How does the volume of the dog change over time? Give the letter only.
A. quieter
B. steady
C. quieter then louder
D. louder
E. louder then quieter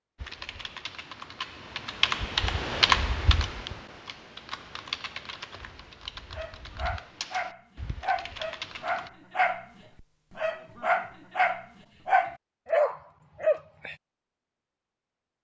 D.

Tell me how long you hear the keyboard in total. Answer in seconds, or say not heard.
9 s.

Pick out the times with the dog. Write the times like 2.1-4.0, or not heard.
6.3-9.7, 10.3-13.9.